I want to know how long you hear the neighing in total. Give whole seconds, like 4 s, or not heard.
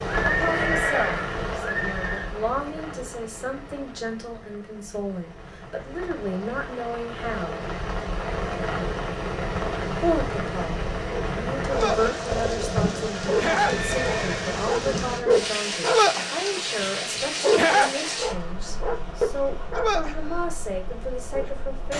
3 s.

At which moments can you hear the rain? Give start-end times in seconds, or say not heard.
0.0-21.9.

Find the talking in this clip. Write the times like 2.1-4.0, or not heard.
0.2-7.7, 9.9-21.9.